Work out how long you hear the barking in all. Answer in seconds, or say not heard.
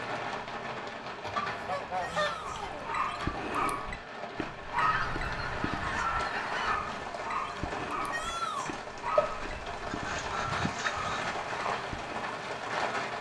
10 s.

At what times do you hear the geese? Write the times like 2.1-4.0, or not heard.
1.2-2.9, 4.8-6.8, 9.9-11.3.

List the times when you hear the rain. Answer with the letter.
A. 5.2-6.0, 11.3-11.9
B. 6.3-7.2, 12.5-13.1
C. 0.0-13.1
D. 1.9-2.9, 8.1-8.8
C.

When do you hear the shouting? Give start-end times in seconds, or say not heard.
1.9-2.9, 8.1-8.8.